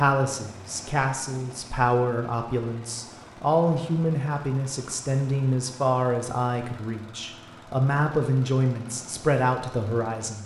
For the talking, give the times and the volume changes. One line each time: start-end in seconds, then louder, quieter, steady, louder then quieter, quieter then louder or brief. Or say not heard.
0.0-10.4 steady.